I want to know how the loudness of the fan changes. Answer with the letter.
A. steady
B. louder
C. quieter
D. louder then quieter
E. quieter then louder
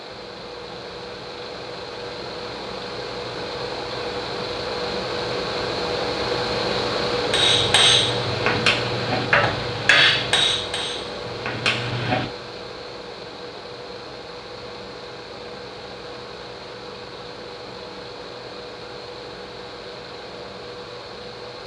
D.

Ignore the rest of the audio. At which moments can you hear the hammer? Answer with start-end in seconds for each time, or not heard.
7.1-12.2.